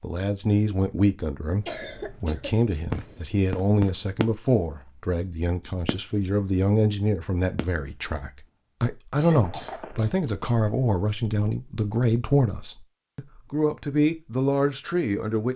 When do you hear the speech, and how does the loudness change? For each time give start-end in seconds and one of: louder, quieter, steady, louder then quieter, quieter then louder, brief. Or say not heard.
0.0-15.5 steady.